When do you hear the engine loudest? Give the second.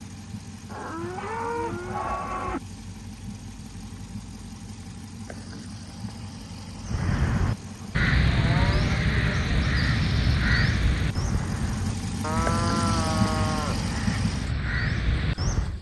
13 s.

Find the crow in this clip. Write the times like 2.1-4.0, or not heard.
6.8-15.7.